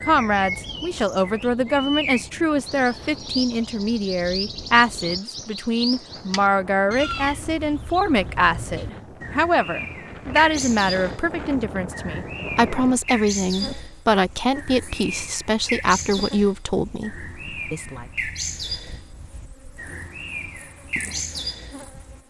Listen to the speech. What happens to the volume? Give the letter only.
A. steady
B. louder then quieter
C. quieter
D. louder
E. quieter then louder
A.